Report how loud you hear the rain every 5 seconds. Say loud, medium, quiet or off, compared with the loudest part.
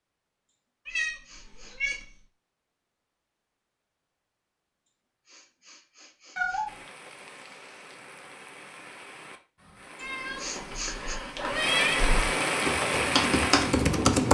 off, quiet, loud.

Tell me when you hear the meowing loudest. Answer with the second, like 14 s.
12 s.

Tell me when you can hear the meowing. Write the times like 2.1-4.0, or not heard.
0.8-2.2, 6.3-6.8, 10.0-12.2.